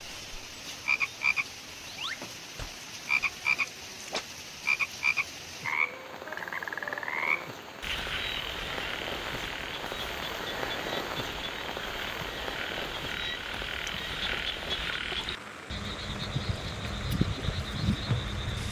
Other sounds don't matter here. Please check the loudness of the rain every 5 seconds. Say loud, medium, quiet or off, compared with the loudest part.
medium, loud, loud, medium.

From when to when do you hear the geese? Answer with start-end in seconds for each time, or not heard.
not heard.